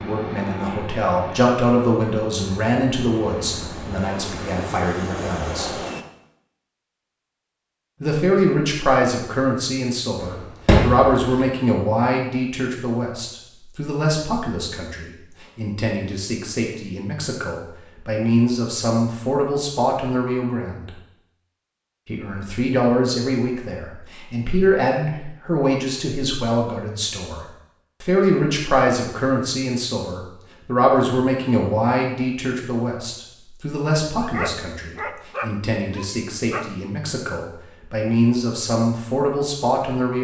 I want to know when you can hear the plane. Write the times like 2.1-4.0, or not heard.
0.0-6.0.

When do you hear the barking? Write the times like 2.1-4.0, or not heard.
34.1-36.6.